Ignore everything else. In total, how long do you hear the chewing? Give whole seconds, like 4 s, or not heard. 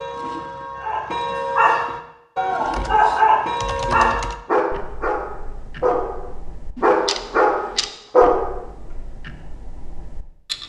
not heard.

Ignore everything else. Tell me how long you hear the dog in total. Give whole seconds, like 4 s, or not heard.
8 s.